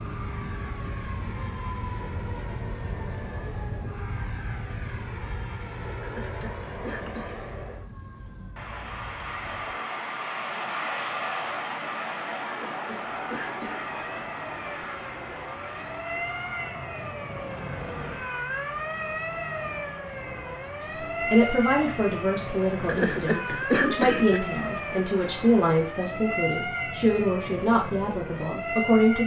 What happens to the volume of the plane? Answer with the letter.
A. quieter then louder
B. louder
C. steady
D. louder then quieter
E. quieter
D.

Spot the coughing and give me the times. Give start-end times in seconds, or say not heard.
6.0-7.4, 12.4-14.4, 22.9-24.4.